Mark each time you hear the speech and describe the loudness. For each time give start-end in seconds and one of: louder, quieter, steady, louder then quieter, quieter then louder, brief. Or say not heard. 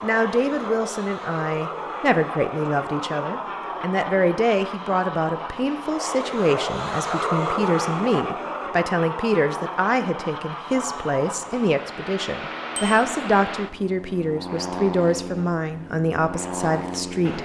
0.0-17.4 steady.